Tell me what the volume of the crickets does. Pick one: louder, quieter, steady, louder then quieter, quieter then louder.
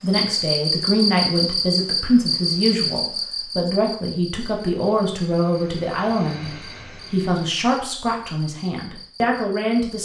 quieter.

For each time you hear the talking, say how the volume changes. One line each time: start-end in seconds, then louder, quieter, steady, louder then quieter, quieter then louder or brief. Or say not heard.
0.0-9.9 steady.